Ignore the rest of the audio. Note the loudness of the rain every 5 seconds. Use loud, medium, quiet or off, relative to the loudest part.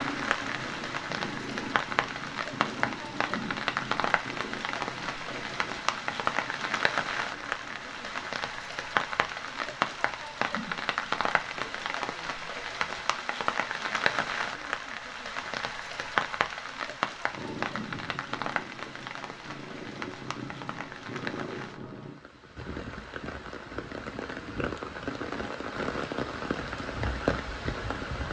loud, loud, loud, loud, medium, loud.